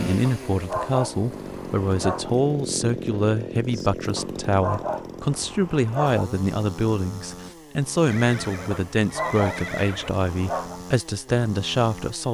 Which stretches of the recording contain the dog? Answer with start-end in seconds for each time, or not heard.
0.2-2.4, 4.2-6.2, 8.7-10.8.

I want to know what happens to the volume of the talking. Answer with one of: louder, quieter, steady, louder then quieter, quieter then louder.
steady.